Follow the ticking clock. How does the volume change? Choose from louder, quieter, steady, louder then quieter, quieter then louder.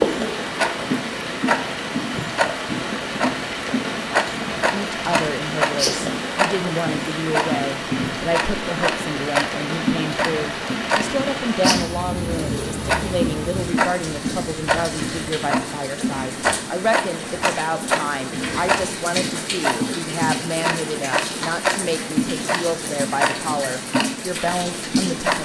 steady.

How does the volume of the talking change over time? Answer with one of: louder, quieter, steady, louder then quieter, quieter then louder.
steady.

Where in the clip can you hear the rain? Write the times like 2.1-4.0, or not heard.
0.0-25.4.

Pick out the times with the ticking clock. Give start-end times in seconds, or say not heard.
0.0-25.4.